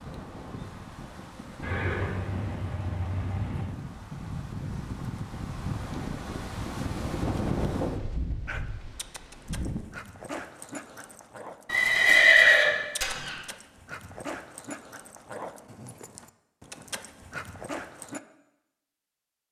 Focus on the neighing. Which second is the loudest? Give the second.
12 s.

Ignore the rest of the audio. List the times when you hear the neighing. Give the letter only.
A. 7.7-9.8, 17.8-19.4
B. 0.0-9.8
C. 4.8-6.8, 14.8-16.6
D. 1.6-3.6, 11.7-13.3
D.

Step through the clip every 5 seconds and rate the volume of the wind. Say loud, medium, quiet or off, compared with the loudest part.
medium, loud, off, off.